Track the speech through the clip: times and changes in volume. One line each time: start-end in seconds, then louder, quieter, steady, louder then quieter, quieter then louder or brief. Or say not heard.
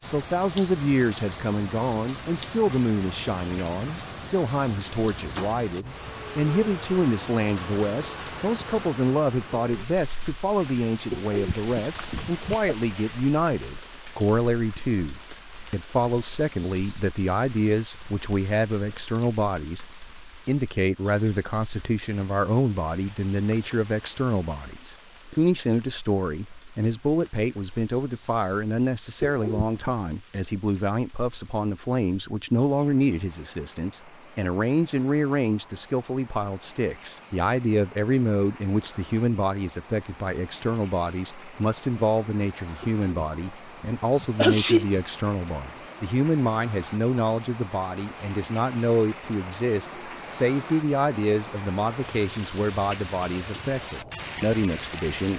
0.0-19.9 steady
20.4-55.3 steady.